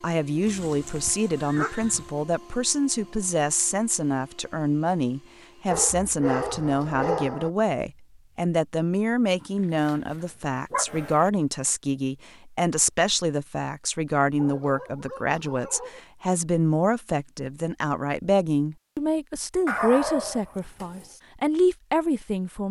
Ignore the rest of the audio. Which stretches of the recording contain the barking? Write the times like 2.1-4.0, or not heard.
0.5-2.1, 5.7-7.5, 9.8-11.3, 14.3-16.0, 19.6-21.1.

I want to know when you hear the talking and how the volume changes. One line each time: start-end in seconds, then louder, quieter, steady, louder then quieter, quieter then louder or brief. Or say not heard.
0.0-22.6 steady.